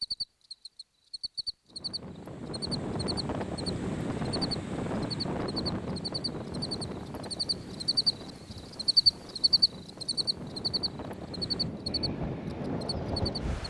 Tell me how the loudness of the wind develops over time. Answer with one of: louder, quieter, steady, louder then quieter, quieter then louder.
quieter then louder.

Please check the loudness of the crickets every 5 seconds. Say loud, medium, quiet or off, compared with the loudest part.
medium, loud, medium.